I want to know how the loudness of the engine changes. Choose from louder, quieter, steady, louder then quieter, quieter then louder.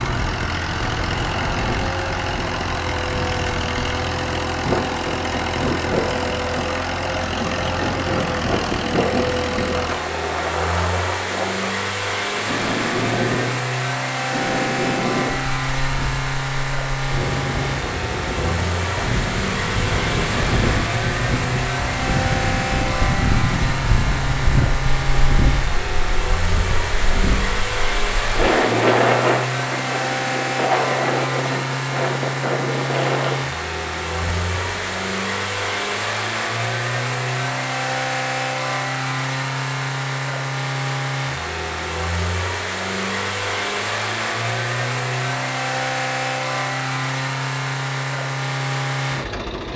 steady.